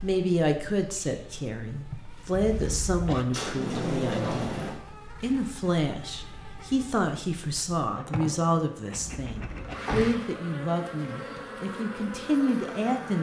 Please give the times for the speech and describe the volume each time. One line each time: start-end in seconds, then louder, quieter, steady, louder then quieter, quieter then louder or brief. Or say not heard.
0.0-13.1 steady.